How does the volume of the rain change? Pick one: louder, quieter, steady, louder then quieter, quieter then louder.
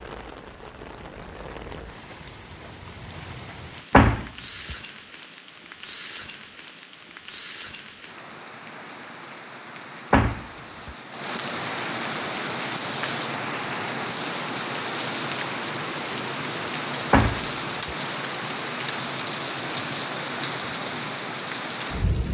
louder.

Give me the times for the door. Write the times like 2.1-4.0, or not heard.
3.9-4.8, 10.1-10.9, 17.1-17.9.